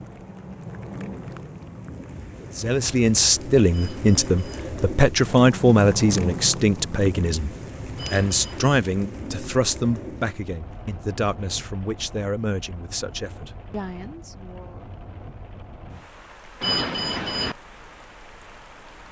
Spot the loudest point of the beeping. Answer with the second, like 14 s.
17 s.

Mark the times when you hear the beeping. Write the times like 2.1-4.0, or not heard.
3.7-4.7, 8.0-8.8, 16.6-17.6.